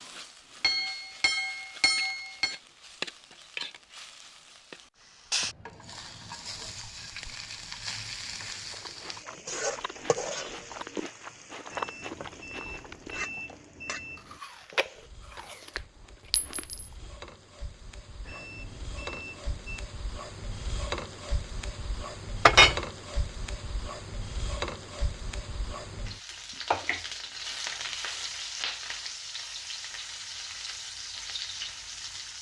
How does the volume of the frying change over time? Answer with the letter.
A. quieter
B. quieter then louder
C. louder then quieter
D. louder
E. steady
B.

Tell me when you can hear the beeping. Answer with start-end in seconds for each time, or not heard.
11.7-14.4, 18.2-19.9.